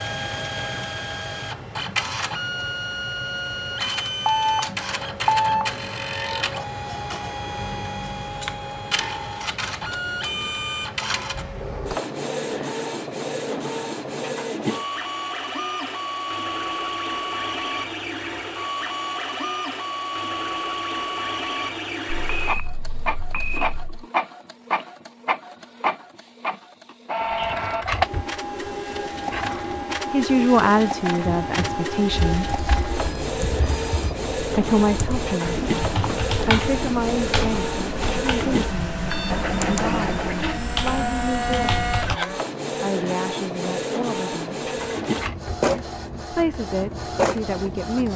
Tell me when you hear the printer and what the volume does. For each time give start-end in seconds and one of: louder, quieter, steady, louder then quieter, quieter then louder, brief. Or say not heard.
0.0-48.1 steady.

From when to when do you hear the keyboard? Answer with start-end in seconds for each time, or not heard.
31.4-42.2.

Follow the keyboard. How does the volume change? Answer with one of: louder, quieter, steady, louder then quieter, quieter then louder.
louder.